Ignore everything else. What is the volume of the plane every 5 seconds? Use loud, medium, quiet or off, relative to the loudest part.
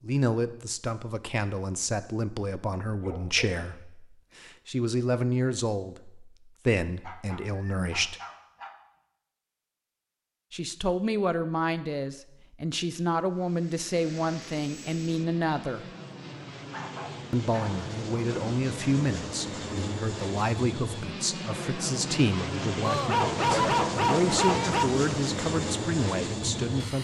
off, off, quiet, medium, loud, loud.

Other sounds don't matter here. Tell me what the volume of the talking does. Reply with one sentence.
The loudness of the talking stays about the same.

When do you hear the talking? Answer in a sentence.
You can hear the talking from 0.0 to 8.2 s, from 10.5 to 15.8 s and from 17.3 to 27.0 s.